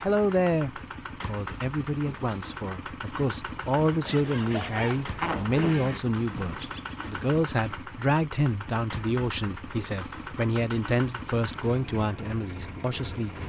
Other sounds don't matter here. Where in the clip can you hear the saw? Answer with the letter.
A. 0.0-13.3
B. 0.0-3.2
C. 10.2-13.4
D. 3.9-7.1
D.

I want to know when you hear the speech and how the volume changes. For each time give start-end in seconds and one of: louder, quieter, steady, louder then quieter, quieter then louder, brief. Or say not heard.
0.0-13.3 steady.